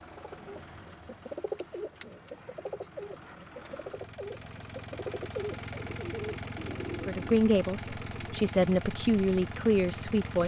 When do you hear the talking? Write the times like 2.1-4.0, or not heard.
7.0-10.4.